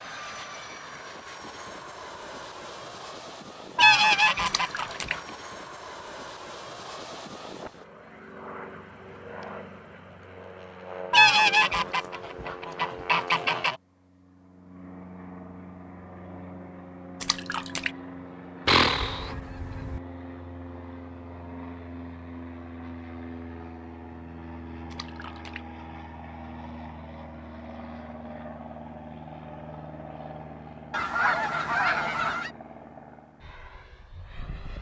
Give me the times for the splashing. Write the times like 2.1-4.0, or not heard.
4.5-5.2, 17.2-17.9, 24.9-25.6.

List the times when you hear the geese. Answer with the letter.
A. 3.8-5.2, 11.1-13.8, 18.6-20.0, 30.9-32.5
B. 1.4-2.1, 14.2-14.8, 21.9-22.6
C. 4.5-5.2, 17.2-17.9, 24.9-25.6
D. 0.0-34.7
A.